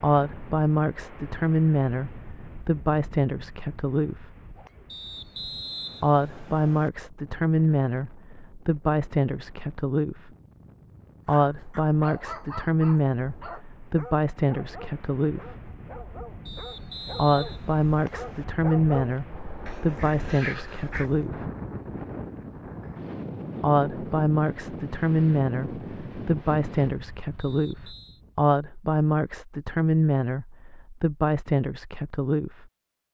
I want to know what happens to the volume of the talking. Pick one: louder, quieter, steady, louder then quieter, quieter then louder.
steady.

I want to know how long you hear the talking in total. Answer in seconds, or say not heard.
26 s.